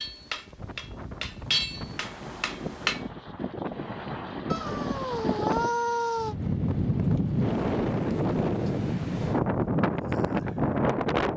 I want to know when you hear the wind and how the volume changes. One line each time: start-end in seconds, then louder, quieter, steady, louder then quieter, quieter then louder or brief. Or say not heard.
0.0-11.3 louder.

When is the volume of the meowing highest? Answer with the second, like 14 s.
6 s.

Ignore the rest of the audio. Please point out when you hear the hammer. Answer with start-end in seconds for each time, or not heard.
0.0-3.0.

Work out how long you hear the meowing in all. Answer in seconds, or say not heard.
2 s.